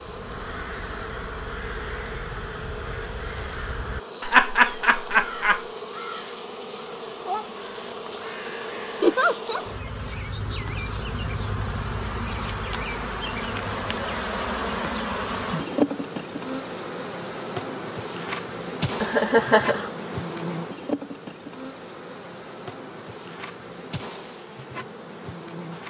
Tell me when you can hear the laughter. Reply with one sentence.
The laughter can be heard from 4.2 to 5.6 s, from 9.0 to 9.7 s and from 19.0 to 19.9 s.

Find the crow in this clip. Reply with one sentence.
The crow can be heard from 0.0 to 9.2 s.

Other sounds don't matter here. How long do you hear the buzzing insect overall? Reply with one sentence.
The buzzing insect can be heard for 26 seconds in total.